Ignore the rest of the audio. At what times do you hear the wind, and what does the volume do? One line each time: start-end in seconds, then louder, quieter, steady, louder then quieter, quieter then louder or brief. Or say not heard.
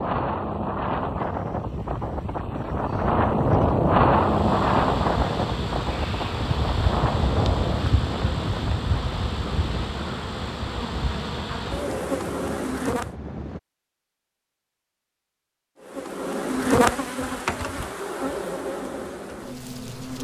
0.0-13.6 louder then quieter.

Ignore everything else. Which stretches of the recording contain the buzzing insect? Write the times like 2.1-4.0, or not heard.
4.1-13.1, 15.8-20.2.